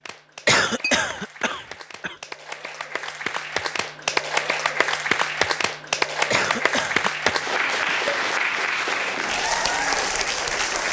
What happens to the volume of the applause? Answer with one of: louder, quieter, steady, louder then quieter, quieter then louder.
louder.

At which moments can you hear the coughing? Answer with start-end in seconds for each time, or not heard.
0.5-2.1, 6.3-8.0.